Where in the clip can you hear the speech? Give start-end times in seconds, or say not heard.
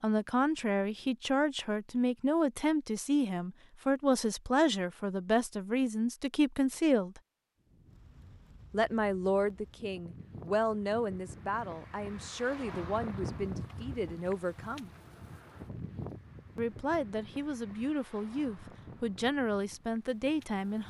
0.0-7.2, 8.7-14.9, 16.6-20.8.